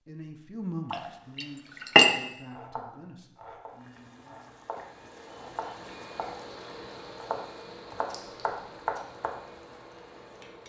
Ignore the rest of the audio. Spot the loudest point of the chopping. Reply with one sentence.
The loudest moment of the chopping is at 9 seconds.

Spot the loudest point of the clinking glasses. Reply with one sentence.
The loudest moment of the clinking glasses is at 2 seconds.